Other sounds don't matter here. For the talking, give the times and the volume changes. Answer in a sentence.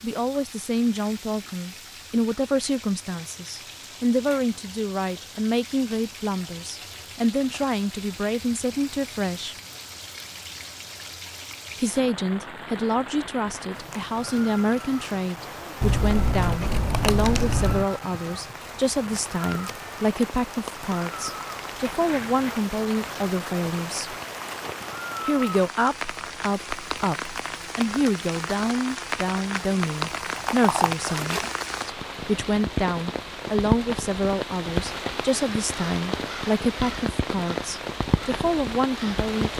You can hear the talking from 0.0 to 9.6 s, at a steady volume; from 11.8 to 24.1 s, at a steady volume; and from 25.2 to 39.5 s, at a steady volume.